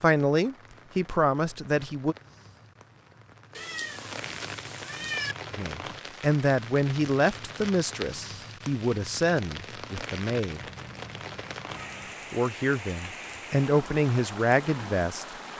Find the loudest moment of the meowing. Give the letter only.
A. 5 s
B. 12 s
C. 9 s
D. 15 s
A.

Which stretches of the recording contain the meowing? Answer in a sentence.
The meowing can be heard from 3.5 to 5.3 s and from 10.6 to 12.2 s.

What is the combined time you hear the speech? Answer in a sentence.
The speech can be heard for 10 seconds in total.